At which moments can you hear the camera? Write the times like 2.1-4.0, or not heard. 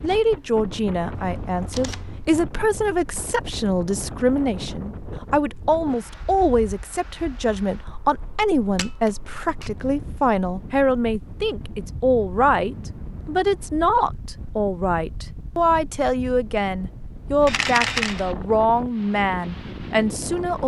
1.1-2.2, 8.8-9.7, 17.4-18.2.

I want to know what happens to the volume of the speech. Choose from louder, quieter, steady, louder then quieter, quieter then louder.
steady.